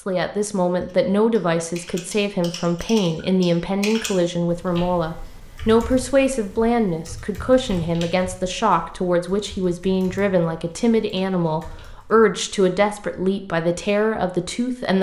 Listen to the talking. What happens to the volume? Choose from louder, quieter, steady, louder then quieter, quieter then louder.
steady.